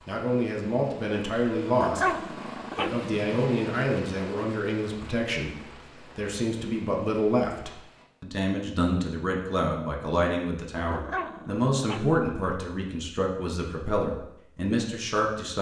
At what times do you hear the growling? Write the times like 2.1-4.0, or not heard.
1.8-3.2, 10.9-12.6.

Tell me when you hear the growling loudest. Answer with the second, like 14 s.
2 s.